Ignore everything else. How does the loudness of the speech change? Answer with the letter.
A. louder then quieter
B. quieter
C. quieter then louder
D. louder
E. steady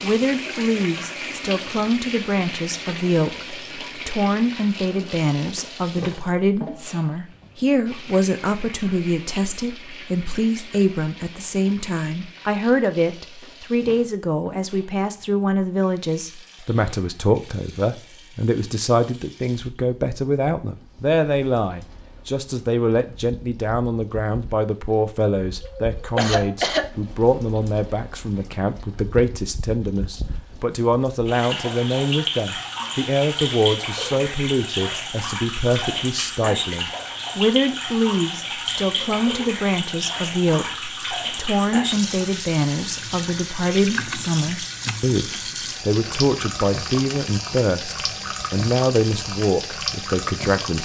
E.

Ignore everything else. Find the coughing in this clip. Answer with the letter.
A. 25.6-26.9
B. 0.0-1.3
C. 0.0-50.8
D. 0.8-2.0
A.